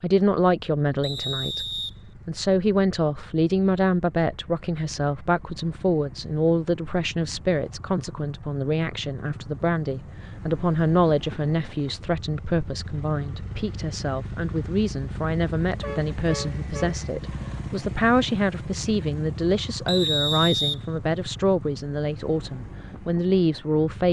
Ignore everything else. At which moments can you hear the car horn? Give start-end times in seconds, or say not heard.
15.8-17.0.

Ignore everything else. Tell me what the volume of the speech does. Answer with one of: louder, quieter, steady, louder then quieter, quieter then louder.
steady.